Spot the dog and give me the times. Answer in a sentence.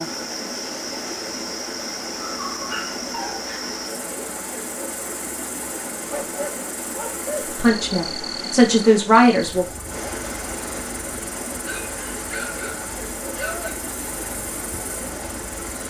You can hear the dog from 2.2 to 3.8 s, from 6.0 to 7.5 s and from 11.6 to 13.8 s.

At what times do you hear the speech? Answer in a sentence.
The speech can be heard from 7.5 to 9.7 s.